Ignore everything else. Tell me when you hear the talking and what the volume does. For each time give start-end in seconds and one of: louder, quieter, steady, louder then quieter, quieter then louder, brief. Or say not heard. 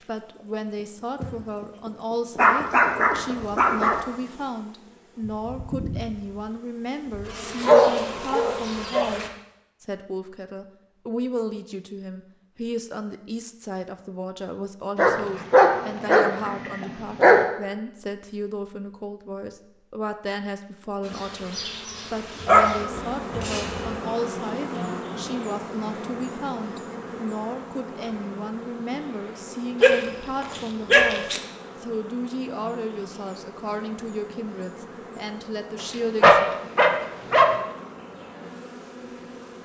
0.1-36.5 steady.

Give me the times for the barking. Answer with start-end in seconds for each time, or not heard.
2.4-4.0, 7.6-9.1, 14.9-17.4, 22.4-23.9, 29.8-31.4, 36.2-37.5.